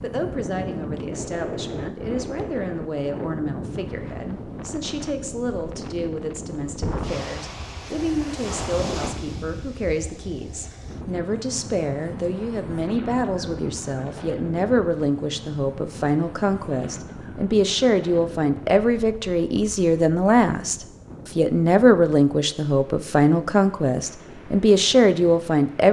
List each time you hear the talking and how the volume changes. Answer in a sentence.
You can hear the talking from 0.0 to 25.8 s, getting louder.